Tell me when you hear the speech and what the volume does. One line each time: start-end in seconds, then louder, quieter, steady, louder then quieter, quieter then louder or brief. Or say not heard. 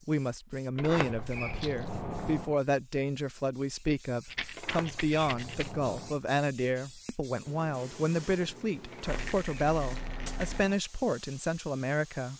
0.1-12.3 steady.